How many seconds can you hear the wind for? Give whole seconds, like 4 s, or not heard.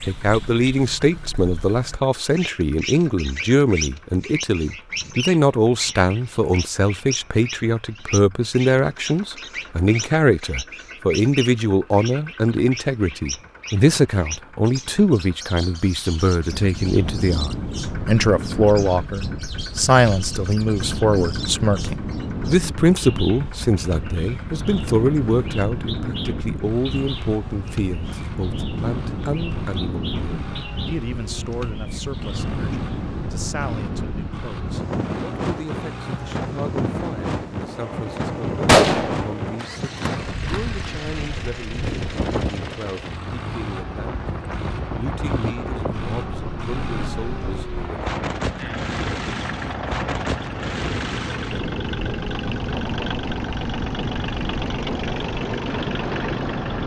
40 s.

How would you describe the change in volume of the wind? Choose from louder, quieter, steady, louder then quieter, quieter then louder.
steady.